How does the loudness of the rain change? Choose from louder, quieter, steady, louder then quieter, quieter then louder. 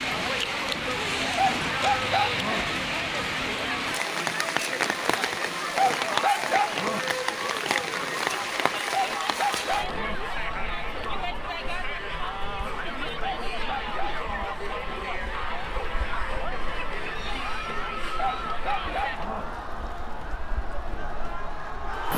quieter.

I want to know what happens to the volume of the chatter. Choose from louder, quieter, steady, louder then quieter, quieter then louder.
steady.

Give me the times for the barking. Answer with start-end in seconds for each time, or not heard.
1.4-2.6, 5.8-7.0, 8.9-10.2, 13.2-14.4, 18.1-19.4.